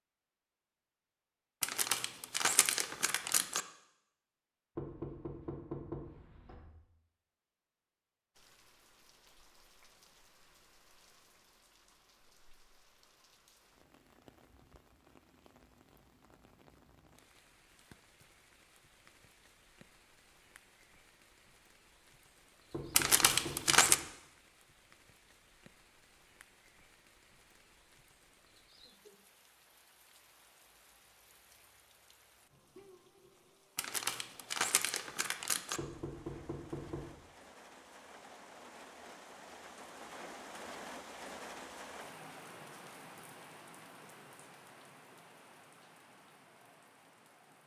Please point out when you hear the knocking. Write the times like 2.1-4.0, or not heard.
4.8-6.7, 22.7-23.9, 35.8-37.1.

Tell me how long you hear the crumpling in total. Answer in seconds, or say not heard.
5 s.